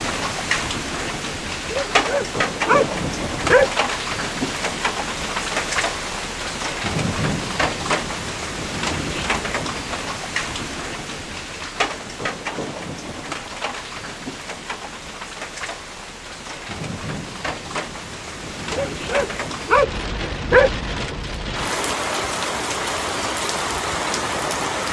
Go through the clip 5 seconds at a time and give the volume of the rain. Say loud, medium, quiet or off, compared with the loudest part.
loud, loud, medium, medium, loud.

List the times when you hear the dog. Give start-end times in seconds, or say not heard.
1.6-3.7, 18.7-20.7.